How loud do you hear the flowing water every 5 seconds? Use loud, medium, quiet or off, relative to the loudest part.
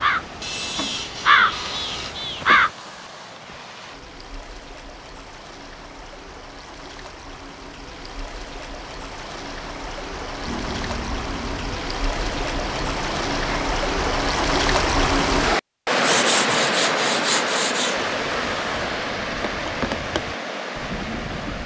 quiet, quiet, loud, loud, medium.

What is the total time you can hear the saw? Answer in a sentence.
You can hear the saw for 4 seconds altogether.